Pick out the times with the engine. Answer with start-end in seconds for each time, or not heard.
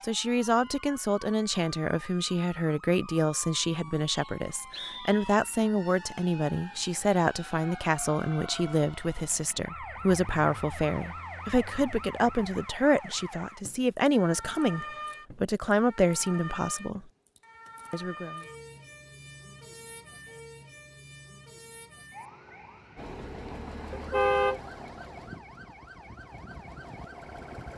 22.9-27.7.